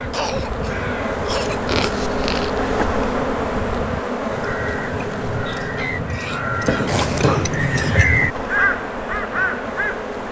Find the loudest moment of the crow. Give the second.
8 s.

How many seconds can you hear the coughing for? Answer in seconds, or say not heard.
3 s.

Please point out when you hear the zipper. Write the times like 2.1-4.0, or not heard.
1.6-2.5, 6.8-7.4.